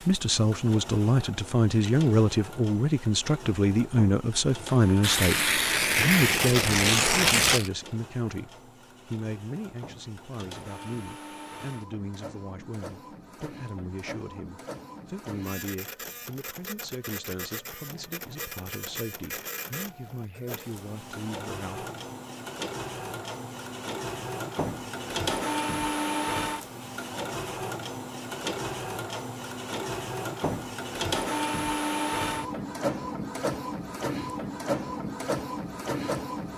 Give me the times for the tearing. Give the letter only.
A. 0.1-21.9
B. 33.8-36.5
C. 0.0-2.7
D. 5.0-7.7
D.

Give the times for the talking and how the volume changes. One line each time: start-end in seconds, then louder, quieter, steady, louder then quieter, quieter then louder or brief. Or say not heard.
0.1-21.9 quieter.